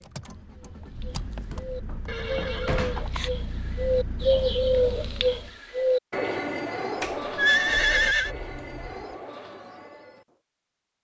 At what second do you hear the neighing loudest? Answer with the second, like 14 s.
8 s.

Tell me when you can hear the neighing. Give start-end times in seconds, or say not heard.
2.0-3.3, 7.3-8.3.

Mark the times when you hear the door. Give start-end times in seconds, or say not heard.
1.5-3.1, 7.0-9.2.